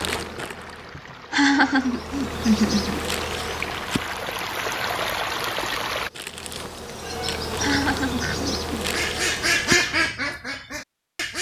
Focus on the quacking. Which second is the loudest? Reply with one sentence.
The volume of the quacking peaks at 10 seconds.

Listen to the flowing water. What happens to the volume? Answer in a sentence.
The volume of the flowing water goes up.